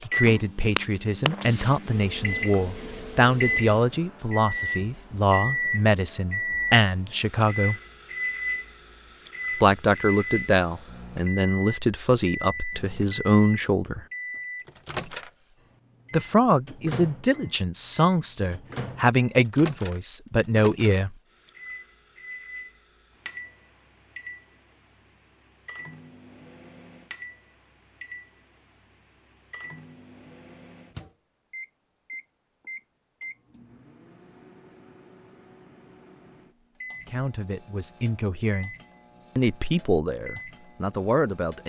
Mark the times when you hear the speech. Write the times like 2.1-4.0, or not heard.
0.1-7.8, 9.6-14.1, 16.1-21.1, 37.0-38.7, 39.4-41.6.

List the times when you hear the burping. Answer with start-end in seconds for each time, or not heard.
not heard.